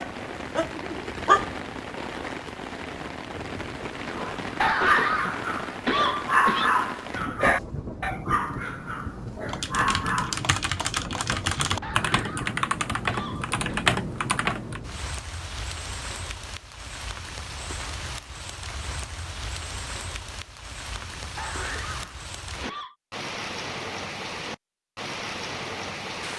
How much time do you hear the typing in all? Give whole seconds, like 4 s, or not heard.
5 s.